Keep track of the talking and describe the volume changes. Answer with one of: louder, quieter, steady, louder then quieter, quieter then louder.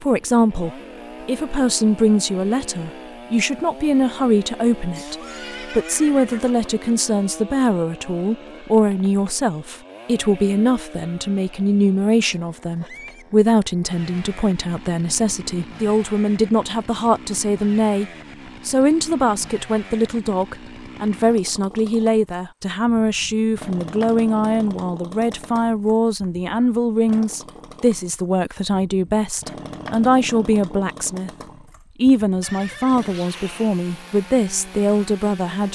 steady.